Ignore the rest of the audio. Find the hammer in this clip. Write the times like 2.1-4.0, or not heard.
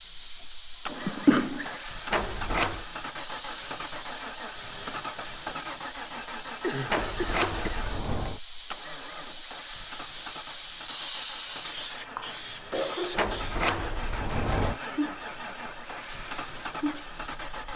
not heard.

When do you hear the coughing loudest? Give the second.
1 s.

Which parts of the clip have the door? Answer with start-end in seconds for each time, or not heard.
2.1-2.9, 6.8-8.4, 13.2-14.8.